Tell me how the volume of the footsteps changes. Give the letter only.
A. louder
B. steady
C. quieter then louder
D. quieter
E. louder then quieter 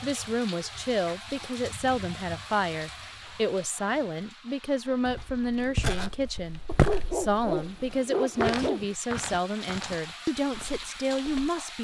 E.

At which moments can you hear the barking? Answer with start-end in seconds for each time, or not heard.
6.7-8.9.